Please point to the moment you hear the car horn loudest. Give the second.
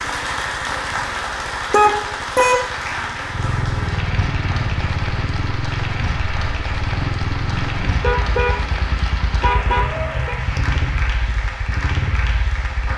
2 s.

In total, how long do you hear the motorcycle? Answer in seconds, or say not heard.
13 s.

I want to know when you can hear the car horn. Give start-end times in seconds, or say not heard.
1.7-2.8, 8.0-10.3.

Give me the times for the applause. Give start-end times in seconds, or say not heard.
0.0-12.9.